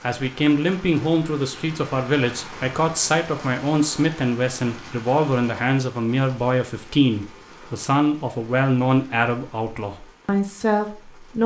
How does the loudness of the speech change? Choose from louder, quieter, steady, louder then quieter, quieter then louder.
steady.